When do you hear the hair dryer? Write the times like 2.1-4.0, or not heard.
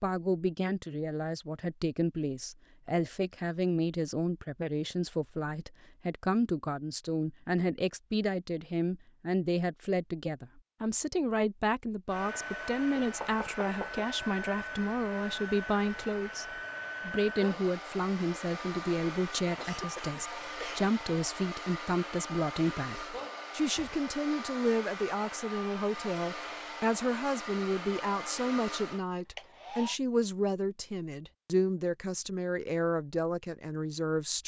12.1-30.0.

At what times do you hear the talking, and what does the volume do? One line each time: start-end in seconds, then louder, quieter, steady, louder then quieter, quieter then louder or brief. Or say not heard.
0.0-34.4 steady.